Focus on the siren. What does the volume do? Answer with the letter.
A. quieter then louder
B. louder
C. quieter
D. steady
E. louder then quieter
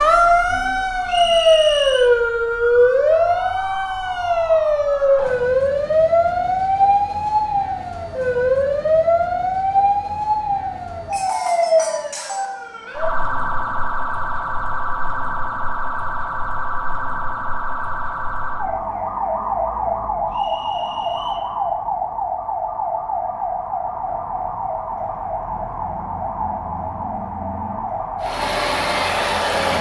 C.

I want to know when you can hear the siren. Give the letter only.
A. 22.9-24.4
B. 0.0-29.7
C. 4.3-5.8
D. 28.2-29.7
B.